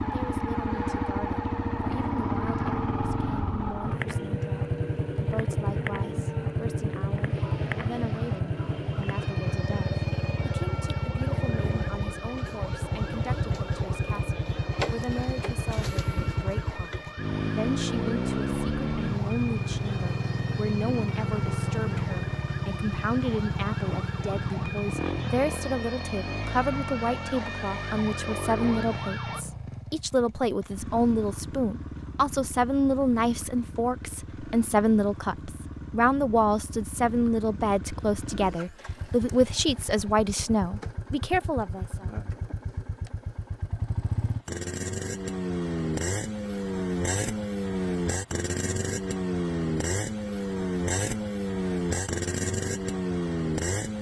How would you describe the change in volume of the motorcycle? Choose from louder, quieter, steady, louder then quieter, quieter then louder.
quieter then louder.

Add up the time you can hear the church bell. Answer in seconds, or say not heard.
not heard.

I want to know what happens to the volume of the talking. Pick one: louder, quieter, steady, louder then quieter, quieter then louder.
louder.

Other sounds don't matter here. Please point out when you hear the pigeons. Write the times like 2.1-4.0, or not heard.
not heard.